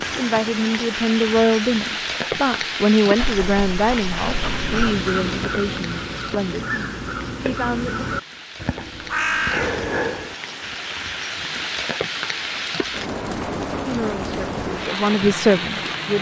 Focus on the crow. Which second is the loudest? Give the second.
9 s.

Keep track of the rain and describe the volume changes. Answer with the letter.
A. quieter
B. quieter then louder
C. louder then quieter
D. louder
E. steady
B.